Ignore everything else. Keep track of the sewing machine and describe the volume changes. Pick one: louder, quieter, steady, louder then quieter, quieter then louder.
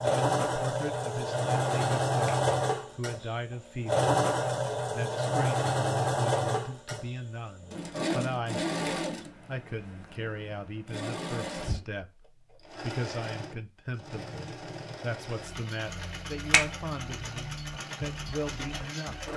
quieter.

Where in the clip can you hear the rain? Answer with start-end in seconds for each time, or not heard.
not heard.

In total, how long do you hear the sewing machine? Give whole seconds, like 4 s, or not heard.
19 s.